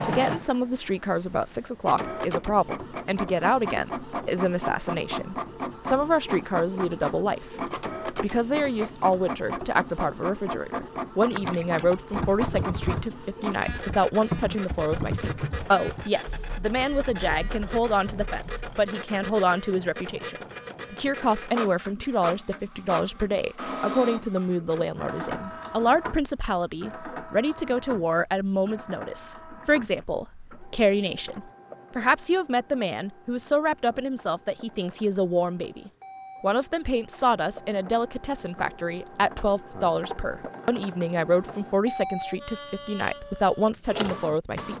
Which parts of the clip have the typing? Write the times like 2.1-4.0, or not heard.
11.3-18.9.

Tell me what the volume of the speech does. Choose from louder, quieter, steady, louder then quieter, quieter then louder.
steady.